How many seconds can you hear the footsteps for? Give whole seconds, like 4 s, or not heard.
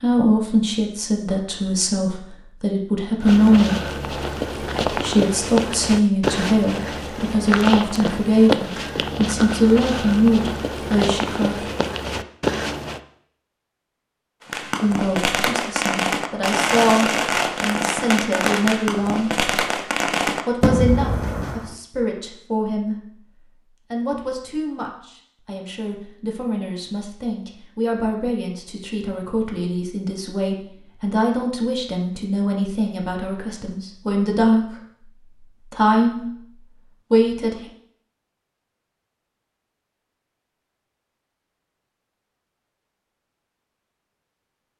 10 s.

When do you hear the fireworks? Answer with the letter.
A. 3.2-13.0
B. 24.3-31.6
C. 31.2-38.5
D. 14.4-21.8
D.